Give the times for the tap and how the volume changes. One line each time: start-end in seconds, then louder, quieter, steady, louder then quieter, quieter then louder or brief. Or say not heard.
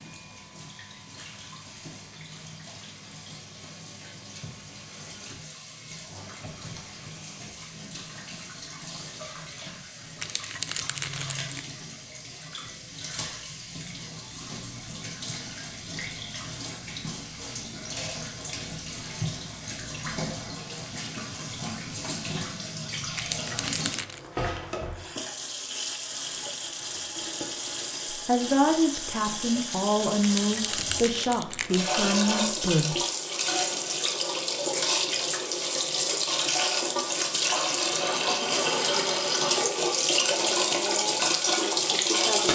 0.0-42.5 louder.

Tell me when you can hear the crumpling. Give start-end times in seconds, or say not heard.
10.2-11.7, 23.1-24.2, 30.2-31.9.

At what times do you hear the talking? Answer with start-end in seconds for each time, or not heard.
28.1-33.0.